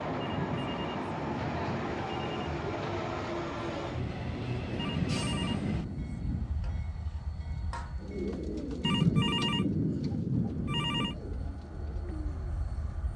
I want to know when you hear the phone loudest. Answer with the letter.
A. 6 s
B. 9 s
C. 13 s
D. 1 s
B.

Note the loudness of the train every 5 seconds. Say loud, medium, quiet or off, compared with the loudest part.
loud, medium, quiet.